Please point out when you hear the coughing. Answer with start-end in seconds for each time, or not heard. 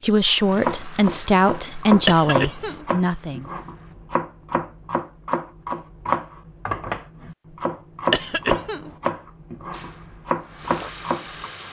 2.0-2.9, 8.1-8.9.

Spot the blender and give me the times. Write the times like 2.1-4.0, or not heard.
not heard.